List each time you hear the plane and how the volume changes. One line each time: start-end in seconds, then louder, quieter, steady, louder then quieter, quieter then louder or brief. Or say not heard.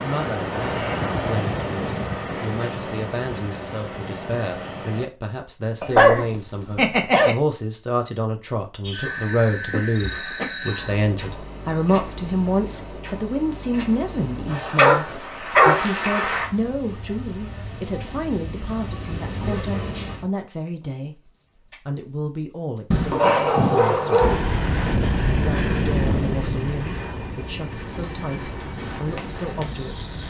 0.0-5.1 quieter
24.2-30.2 quieter.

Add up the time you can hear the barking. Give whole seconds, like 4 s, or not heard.
4 s.